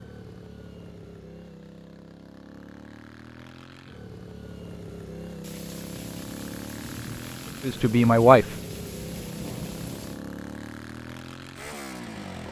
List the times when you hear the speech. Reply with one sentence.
The speech can be heard from 7.7 to 8.6 s.